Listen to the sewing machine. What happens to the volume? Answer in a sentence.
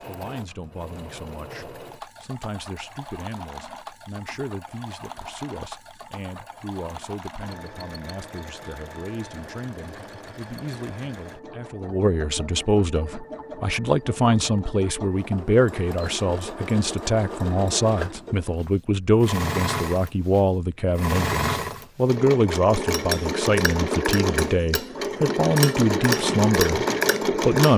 The loudness of the sewing machine goes up.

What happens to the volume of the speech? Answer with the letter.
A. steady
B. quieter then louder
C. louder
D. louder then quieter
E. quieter
C.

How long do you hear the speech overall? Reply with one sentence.
You can hear the speech for 28 seconds altogether.